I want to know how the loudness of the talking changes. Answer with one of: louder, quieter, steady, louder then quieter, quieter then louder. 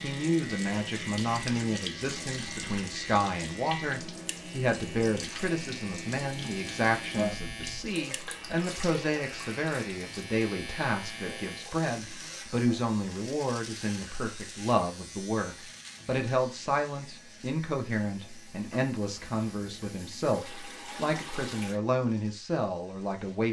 steady.